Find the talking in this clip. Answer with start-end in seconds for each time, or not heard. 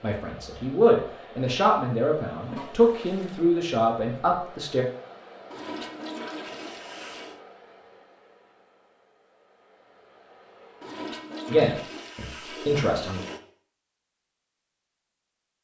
0.0-4.8, 11.4-13.2.